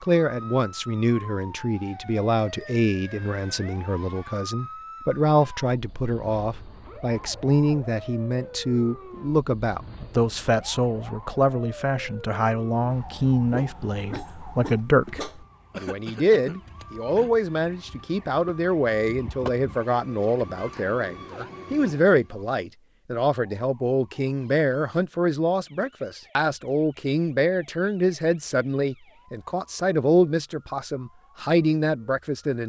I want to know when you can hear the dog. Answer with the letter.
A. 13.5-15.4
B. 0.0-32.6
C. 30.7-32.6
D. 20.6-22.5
A.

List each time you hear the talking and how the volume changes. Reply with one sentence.
The talking can be heard from 0.0 to 32.6 s, at a steady volume.